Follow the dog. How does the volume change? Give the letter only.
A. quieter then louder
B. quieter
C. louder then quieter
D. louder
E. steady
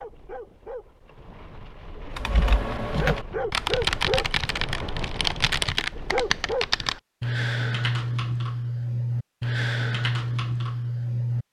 D.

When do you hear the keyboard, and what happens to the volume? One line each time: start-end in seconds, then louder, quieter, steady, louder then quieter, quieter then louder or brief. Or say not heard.
2.1-11.4 steady.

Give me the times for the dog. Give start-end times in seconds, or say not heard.
0.0-6.8.